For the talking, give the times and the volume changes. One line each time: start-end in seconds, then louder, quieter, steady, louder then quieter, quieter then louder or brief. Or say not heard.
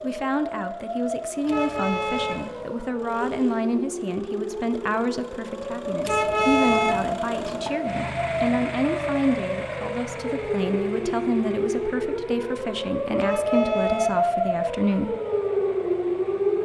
0.0-15.2 steady.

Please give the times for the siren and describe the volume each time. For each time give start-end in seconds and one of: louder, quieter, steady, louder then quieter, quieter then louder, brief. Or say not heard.
0.0-16.6 louder.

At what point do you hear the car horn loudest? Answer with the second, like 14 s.
7 s.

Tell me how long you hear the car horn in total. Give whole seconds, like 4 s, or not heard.
3 s.